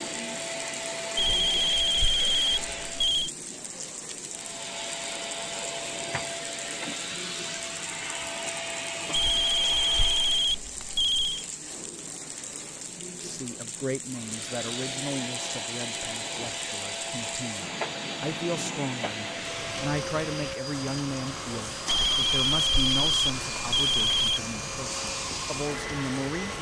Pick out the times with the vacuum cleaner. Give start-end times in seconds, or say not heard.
0.0-3.3, 4.2-10.6, 14.1-26.5.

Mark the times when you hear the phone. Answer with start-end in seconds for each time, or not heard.
1.1-3.3, 9.1-11.4, 21.9-24.4.